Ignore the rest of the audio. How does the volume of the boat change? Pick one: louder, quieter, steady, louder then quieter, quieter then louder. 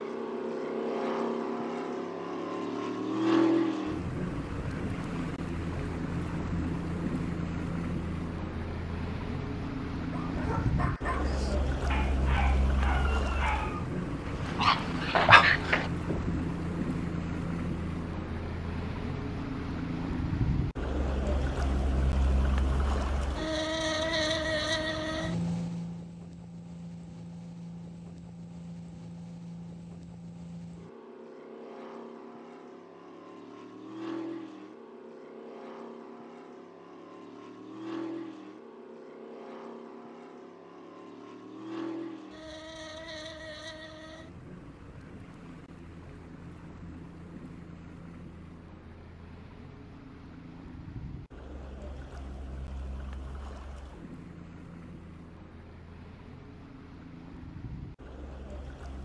quieter.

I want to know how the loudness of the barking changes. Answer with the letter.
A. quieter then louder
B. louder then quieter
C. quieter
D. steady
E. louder
E.